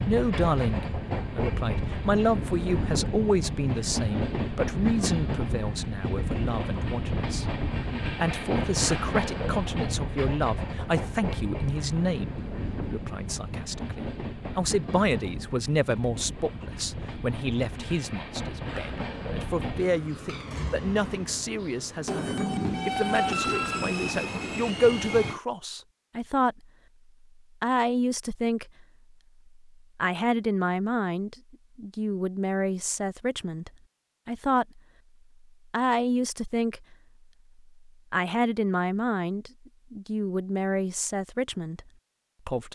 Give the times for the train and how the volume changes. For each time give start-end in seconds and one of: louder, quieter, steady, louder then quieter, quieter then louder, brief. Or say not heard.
0.0-25.4 quieter then louder.